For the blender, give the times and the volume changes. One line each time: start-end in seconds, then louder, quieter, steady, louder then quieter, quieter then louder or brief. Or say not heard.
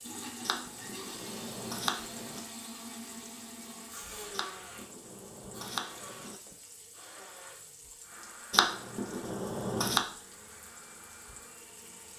0.0-12.1 quieter.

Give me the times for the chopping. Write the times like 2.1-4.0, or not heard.
0.4-2.5, 4.3-6.4, 8.5-10.1.